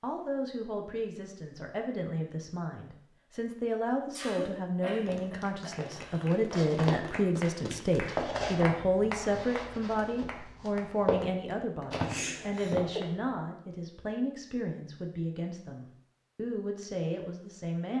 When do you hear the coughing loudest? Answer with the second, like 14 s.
12 s.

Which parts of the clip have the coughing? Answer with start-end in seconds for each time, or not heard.
4.1-6.3, 11.9-13.0.